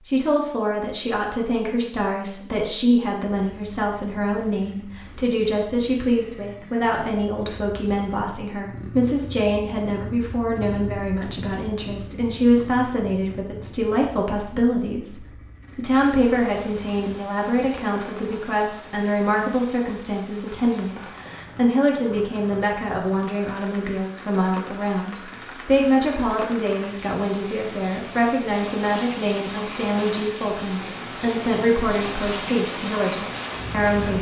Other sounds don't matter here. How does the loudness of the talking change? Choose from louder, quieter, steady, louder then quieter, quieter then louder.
steady.